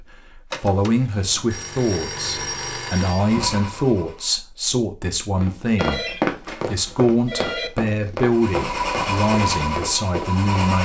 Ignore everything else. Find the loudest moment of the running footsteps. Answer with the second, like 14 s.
6 s.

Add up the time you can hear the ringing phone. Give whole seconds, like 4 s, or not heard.
5 s.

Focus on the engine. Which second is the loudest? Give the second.
9 s.